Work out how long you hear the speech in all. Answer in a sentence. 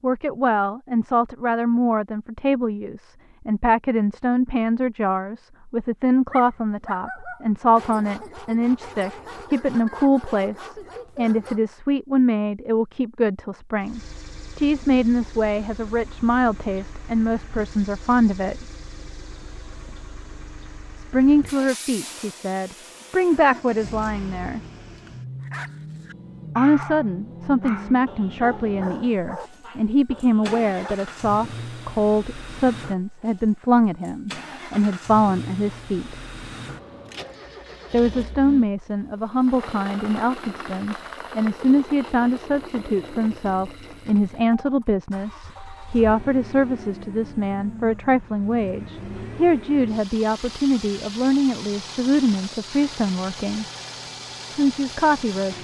The speech can be heard for 49 seconds in total.